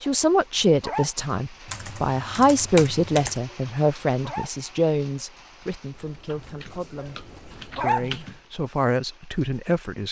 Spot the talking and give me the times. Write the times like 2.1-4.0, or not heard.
0.0-7.2, 7.8-10.0.